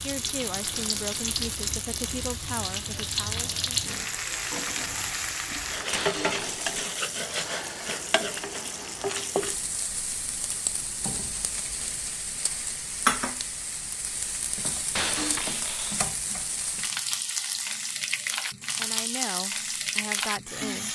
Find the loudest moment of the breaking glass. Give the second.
15 s.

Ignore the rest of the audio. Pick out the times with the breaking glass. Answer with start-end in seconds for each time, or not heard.
5.9-6.8, 14.9-16.1.